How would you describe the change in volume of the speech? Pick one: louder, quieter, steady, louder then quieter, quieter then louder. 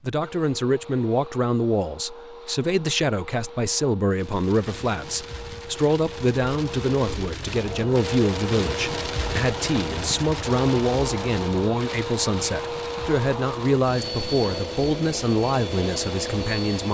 steady.